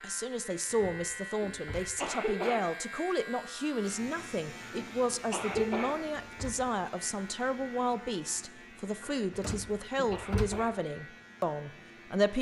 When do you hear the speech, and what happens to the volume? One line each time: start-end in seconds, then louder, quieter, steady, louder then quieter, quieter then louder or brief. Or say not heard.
0.0-12.3 steady.